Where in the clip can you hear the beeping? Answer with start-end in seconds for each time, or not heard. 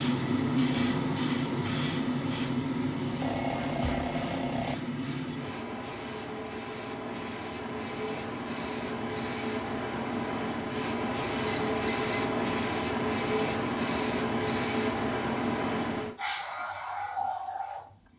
3.2-4.8, 11.4-12.3.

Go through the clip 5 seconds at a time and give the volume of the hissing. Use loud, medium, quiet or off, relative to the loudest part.
loud, medium, loud, loud.